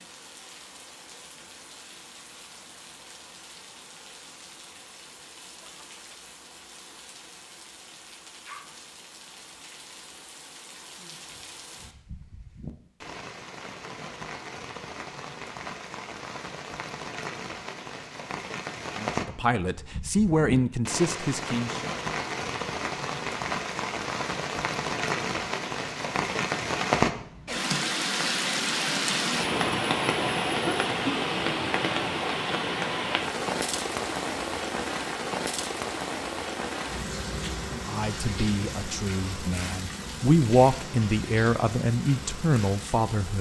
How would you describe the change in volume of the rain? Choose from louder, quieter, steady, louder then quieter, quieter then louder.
louder then quieter.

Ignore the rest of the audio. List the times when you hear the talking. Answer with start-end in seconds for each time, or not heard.
18.9-21.9, 37.7-43.3.